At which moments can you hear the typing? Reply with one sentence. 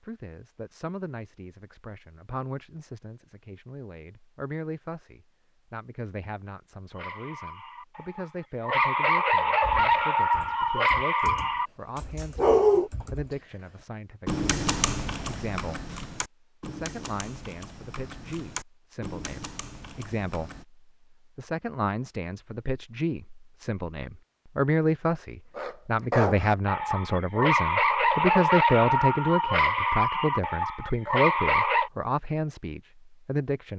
You can hear the typing from 9.6 to 20.6 s.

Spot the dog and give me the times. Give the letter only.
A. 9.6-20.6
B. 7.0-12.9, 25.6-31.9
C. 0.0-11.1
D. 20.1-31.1
B.